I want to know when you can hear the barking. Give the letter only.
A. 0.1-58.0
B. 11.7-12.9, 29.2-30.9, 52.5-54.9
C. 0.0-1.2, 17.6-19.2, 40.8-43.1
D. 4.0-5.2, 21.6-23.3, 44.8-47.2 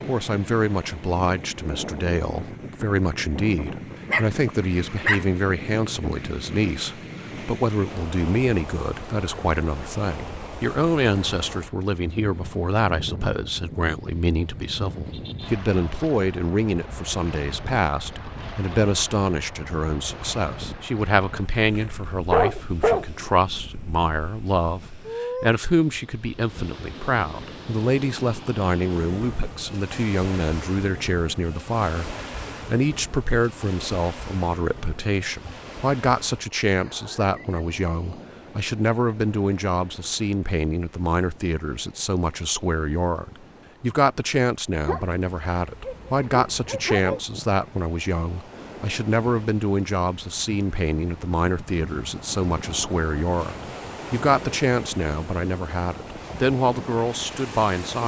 D.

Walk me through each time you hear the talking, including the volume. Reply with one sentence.
The talking can be heard from 0.1 to 58.0 s, at a steady volume.